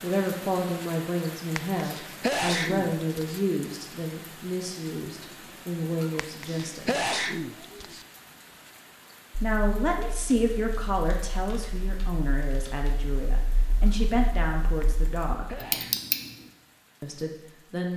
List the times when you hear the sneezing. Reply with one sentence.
The sneezing can be heard from 1.6 to 3.4 s, from 6.2 to 8.1 s and from 14.8 to 16.1 s.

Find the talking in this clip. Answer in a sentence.
The talking can be heard from 0.0 to 7.0 s, from 9.4 to 15.6 s and from 17.0 to 17.9 s.